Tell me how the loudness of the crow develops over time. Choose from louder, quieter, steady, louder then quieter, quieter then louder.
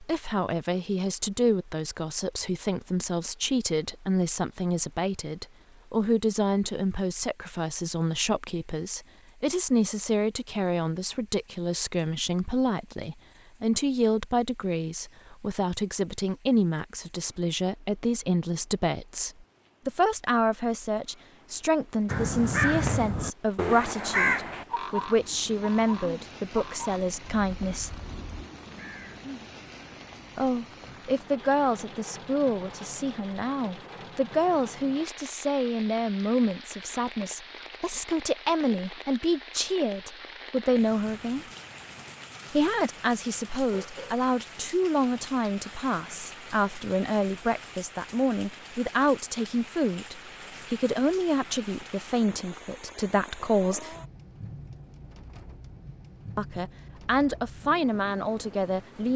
quieter.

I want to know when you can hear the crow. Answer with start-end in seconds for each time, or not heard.
22.1-29.2.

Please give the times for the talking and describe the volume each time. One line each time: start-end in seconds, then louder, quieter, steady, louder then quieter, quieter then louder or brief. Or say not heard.
0.0-27.9 steady
30.4-41.5 steady
42.5-54.0 steady
56.4-59.1 brief.